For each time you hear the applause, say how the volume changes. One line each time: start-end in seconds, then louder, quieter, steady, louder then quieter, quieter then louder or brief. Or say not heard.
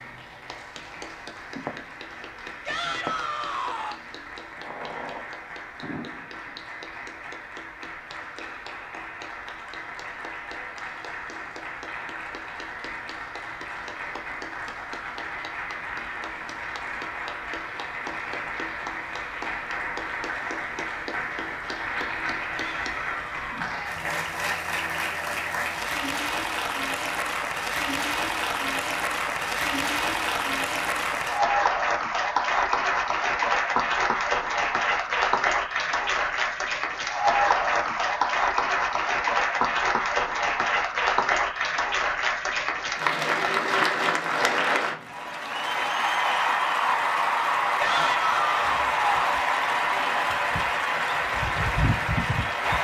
0.0-52.8 louder.